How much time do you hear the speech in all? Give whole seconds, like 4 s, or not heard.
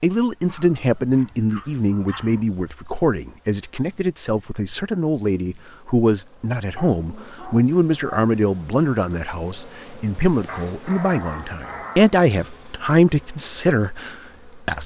15 s.